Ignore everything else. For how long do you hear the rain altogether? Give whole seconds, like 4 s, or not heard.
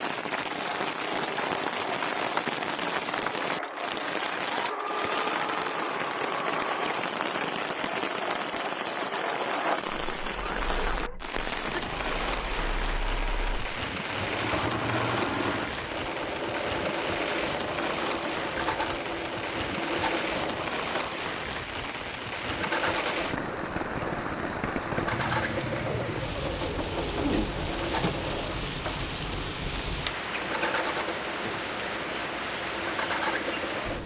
34 s.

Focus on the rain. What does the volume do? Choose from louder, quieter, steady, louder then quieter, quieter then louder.
steady.